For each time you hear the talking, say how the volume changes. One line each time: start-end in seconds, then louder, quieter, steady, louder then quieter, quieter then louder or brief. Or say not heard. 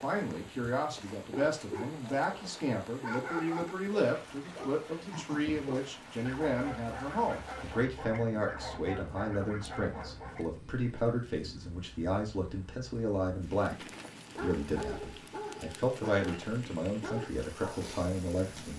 0.0-18.7 steady.